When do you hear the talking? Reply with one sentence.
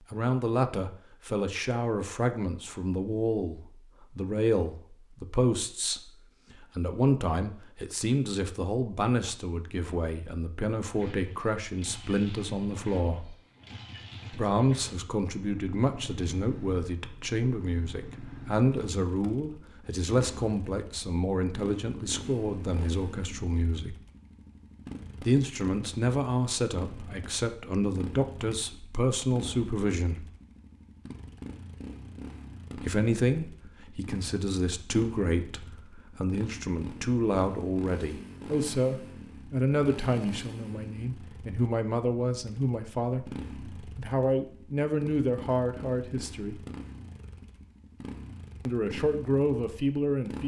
The talking can be heard from 0.1 to 13.3 s, from 14.3 to 23.9 s, from 25.2 to 30.2 s, from 32.8 to 46.6 s and from 48.6 to 50.4 s.